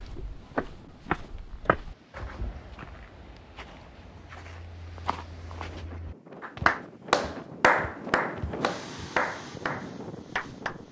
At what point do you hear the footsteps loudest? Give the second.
1 s.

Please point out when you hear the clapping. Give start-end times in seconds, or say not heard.
6.4-10.8.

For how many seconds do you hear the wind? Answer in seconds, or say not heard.
11 s.